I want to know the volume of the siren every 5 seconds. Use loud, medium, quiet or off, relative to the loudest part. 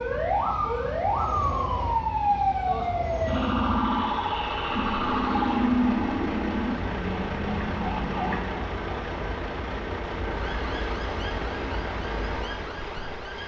loud, loud, quiet.